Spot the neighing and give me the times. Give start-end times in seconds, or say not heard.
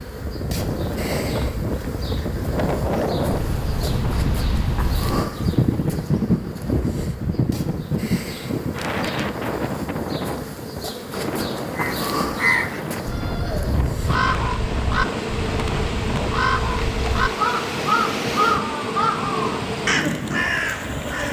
13.0-13.8.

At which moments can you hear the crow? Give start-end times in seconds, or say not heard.
11.8-21.2.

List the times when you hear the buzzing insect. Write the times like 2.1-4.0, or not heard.
0.0-21.2.